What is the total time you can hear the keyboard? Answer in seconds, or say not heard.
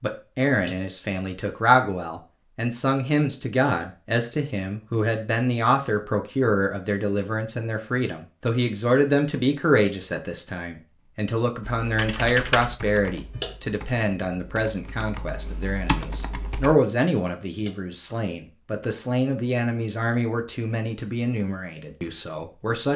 5 s.